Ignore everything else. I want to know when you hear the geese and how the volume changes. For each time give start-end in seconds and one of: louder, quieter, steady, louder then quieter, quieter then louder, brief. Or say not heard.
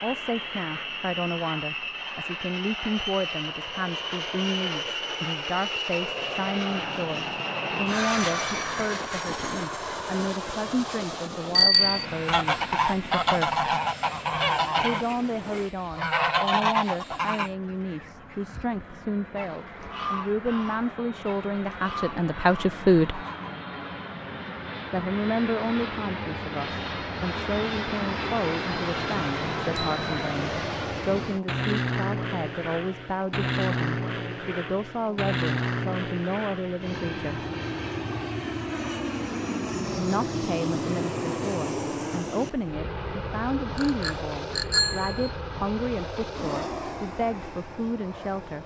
12.2-23.6 quieter.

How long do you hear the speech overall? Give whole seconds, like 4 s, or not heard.
43 s.